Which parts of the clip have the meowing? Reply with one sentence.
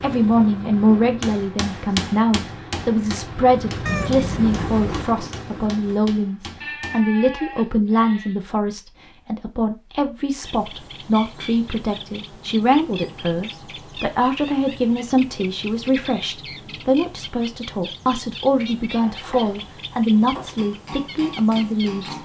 You can hear the meowing from 3.9 to 5.0 s.